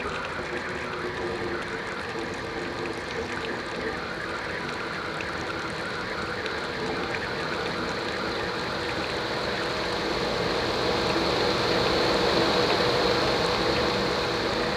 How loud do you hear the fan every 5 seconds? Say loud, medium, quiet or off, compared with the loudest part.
quiet, medium, loud.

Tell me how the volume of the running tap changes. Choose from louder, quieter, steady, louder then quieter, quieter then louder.
steady.